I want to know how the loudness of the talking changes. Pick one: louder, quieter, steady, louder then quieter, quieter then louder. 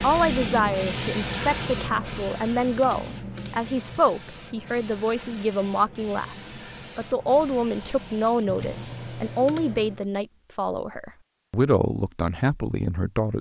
steady.